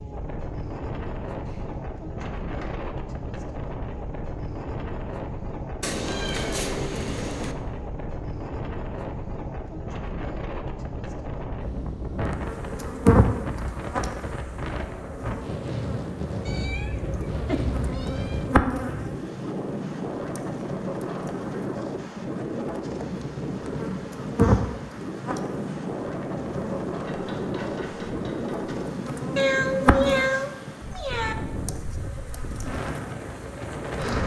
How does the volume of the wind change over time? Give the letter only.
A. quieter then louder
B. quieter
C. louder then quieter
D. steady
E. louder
D.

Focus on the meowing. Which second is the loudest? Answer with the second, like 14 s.
30 s.